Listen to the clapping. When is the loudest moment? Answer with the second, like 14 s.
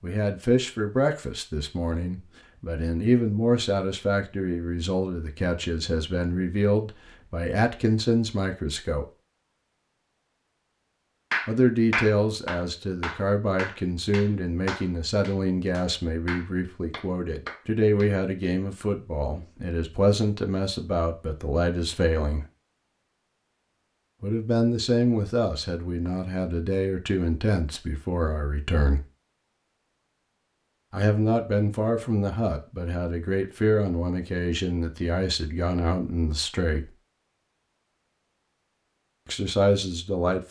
12 s.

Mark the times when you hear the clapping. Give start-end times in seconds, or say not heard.
11.3-18.1.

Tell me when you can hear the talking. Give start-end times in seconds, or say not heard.
0.0-9.1, 11.4-22.4, 24.2-29.1, 30.9-36.9, 39.2-40.4.